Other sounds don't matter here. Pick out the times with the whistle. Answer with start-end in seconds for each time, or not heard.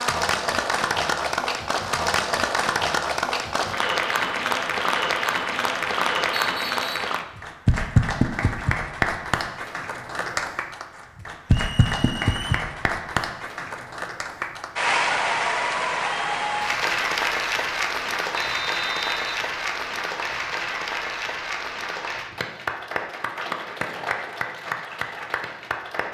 6.3-6.9, 11.4-12.7, 18.4-19.4.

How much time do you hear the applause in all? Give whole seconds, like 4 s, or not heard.
26 s.